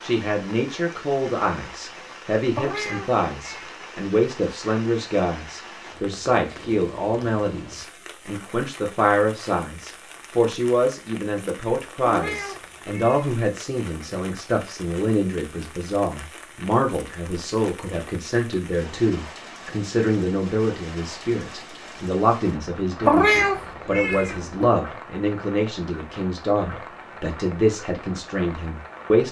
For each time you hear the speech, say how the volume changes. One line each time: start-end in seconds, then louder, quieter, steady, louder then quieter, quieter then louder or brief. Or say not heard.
0.0-29.2 steady.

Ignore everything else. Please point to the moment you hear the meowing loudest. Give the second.
23 s.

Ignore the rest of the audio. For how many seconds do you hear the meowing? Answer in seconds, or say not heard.
4 s.